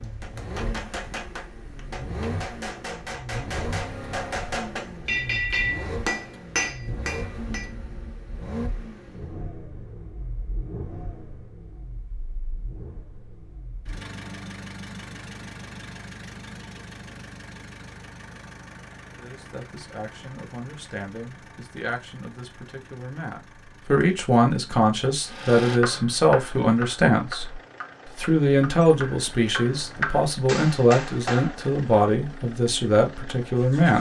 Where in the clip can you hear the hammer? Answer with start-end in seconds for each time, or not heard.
0.0-7.7, 25.2-31.6.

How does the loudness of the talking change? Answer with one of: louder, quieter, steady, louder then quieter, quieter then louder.
louder.